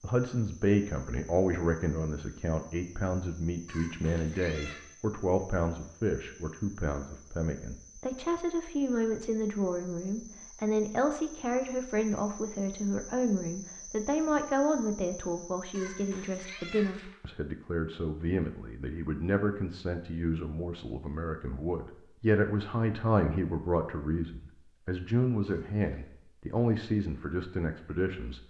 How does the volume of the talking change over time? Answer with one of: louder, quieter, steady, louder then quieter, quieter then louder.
steady.